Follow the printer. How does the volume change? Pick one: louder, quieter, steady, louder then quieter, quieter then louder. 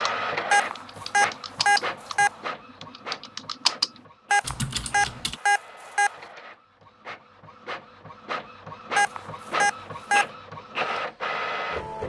quieter then louder.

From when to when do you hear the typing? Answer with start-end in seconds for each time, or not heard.
0.0-5.4.